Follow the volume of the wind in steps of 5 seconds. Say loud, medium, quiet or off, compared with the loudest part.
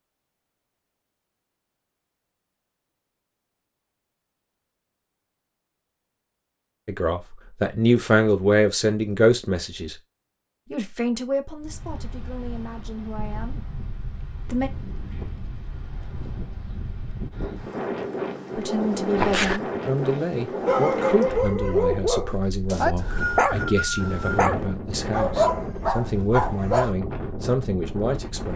off, off, medium, loud, loud, loud.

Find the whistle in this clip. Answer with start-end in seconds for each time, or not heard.
22.6-24.4.